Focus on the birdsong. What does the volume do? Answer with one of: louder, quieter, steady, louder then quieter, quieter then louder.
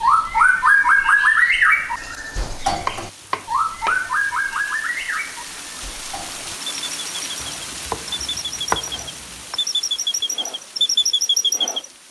quieter then louder.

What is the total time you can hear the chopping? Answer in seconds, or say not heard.
4 s.